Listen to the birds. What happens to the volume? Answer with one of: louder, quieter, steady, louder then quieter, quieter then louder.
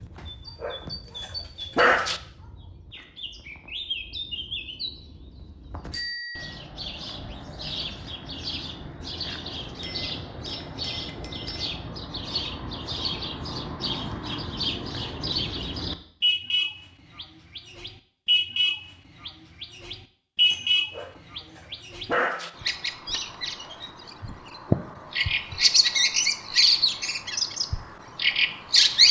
louder.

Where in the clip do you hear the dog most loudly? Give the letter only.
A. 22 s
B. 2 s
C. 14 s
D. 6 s
B.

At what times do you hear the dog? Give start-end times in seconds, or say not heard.
0.6-2.2, 20.5-22.5.